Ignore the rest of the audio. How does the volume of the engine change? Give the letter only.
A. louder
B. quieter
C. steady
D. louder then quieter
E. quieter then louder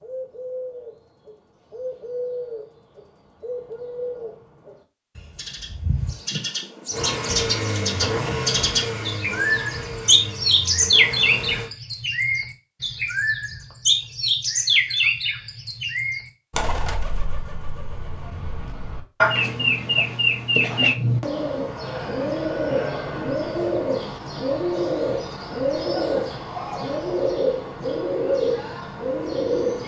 B.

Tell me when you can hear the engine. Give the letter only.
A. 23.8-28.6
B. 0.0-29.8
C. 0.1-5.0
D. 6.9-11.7
D.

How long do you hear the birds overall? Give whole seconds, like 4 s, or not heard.
30 s.